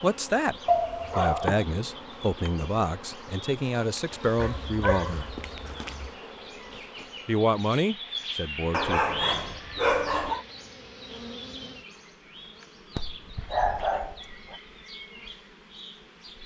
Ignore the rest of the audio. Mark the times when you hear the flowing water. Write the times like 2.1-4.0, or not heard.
not heard.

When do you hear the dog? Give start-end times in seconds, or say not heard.
0.7-1.6, 4.3-6.1, 8.7-10.4, 12.9-14.6.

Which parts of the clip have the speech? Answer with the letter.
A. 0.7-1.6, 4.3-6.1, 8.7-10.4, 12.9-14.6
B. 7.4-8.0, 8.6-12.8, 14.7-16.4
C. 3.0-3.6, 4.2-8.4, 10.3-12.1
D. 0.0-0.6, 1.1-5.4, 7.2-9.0
D.